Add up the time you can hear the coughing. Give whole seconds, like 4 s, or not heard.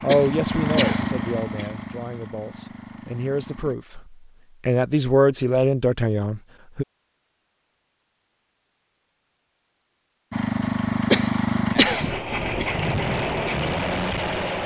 3 s.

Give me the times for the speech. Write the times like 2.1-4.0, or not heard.
0.0-6.8.